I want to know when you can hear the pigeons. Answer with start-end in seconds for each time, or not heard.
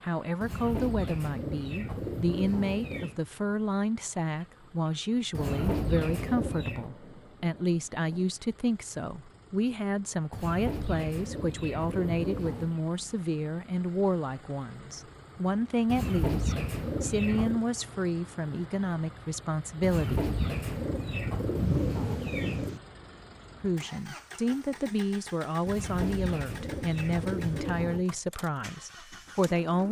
0.4-3.2, 5.3-6.9, 10.3-12.8, 15.8-17.6, 19.8-22.8, 25.6-28.1.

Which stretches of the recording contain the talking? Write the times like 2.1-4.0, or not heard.
0.0-20.2, 23.6-29.8.